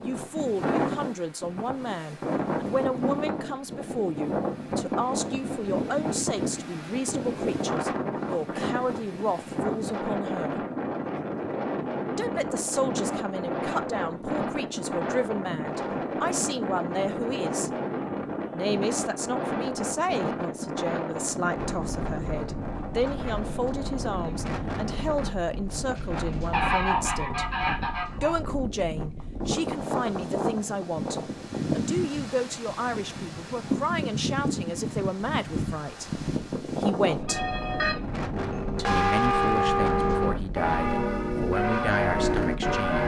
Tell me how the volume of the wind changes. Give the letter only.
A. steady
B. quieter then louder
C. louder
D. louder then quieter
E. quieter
A.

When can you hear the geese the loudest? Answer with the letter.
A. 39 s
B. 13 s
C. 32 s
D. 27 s
D.